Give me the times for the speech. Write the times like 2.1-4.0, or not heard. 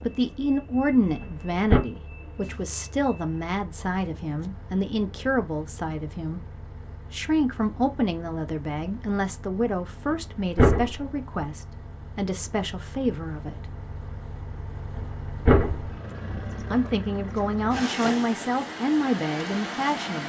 0.0-6.4, 7.1-13.6, 16.7-20.2.